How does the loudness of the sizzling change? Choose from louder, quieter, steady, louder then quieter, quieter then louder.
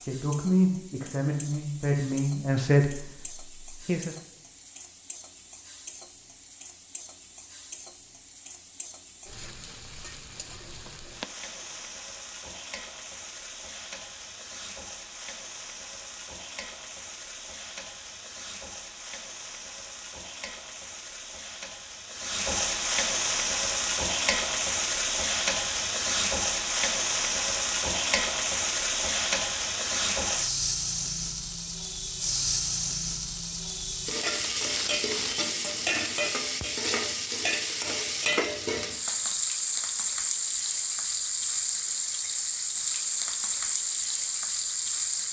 louder.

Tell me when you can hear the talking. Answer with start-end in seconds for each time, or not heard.
0.0-4.2.